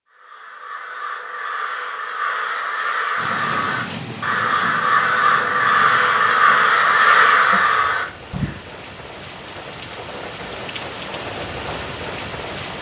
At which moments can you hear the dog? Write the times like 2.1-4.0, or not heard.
not heard.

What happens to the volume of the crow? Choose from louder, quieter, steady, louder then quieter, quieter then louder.
louder.